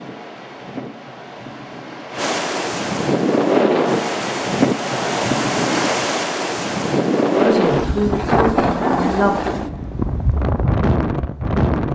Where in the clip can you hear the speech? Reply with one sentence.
You can hear the speech from 7.3 to 9.6 s.